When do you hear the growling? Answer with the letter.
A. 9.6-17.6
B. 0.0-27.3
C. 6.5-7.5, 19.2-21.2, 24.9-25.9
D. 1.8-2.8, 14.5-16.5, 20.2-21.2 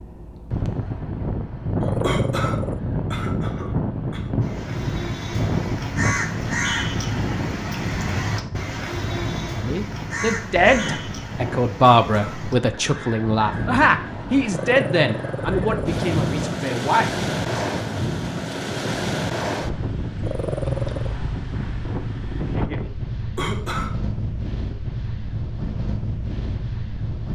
D.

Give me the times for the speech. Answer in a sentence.
The speech can be heard from 9.6 to 17.6 s.